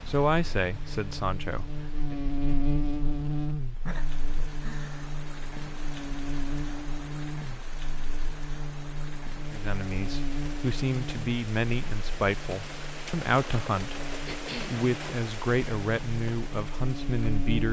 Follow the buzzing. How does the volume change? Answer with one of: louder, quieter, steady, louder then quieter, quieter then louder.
quieter.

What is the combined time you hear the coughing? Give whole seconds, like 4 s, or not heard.
2 s.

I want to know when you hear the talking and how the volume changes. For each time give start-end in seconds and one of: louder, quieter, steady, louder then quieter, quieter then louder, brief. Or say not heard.
0.1-2.1 brief
9.5-17.6 steady.